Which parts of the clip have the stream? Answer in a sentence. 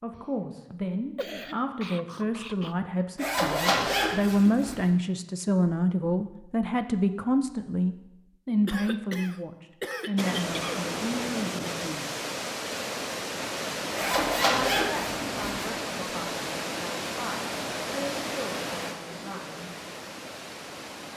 The stream can be heard from 10.2 to 21.1 s.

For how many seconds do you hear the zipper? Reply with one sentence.
You can hear the zipper for 3 seconds altogether.